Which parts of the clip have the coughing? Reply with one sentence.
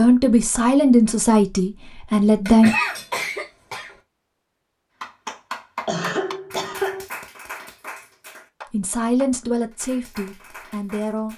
The coughing can be heard from 2.5 to 4.0 s and from 5.8 to 7.0 s.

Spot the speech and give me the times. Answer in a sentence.
You can hear the speech from 0.0 to 2.8 s and from 8.7 to 11.3 s.